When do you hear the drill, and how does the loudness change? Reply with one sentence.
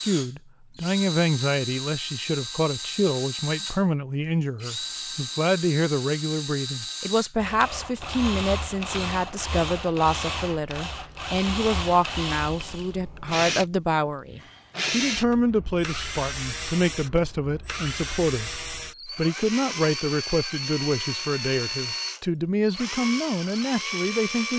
The drill can be heard from 0.0 to 24.5 s, at a steady volume.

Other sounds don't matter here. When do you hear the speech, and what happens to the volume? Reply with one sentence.
The speech can be heard from 0.0 to 24.5 s, at a steady volume.